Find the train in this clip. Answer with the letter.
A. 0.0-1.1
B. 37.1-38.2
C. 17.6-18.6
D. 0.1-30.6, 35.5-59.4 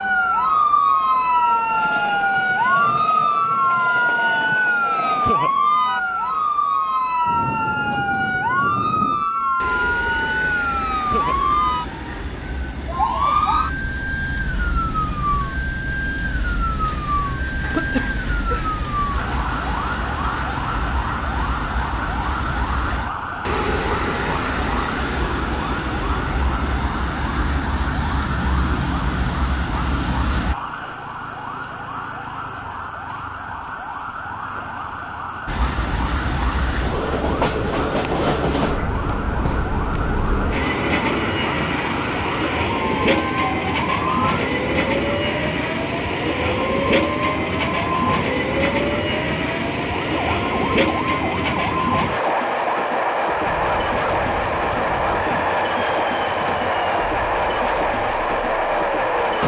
D.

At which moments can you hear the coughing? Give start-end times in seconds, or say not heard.
17.6-18.6.